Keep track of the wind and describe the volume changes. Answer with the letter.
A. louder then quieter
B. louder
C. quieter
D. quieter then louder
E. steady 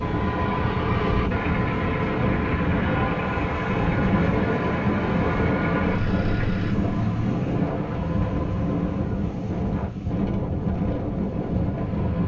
E.